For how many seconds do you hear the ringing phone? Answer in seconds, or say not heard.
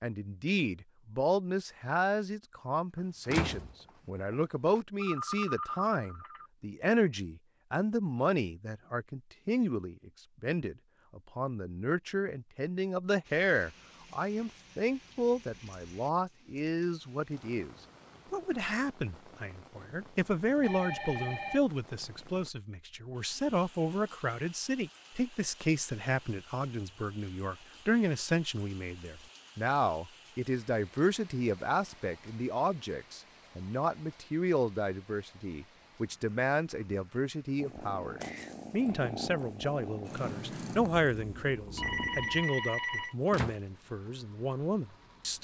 4 s.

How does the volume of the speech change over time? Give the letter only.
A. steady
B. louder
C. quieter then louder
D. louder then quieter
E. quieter
A.